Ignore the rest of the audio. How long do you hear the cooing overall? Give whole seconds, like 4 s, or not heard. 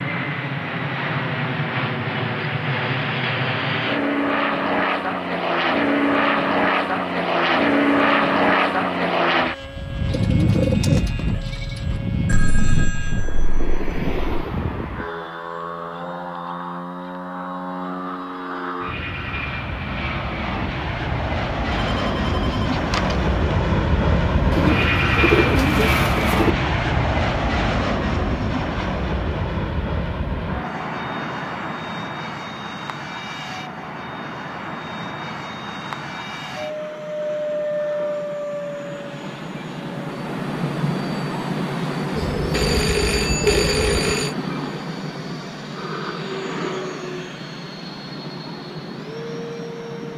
6 s.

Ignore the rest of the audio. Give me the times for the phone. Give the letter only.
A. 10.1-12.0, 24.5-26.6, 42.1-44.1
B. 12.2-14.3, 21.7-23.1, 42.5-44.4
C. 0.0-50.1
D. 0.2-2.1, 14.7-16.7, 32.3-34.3
B.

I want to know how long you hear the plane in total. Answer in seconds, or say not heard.
50 s.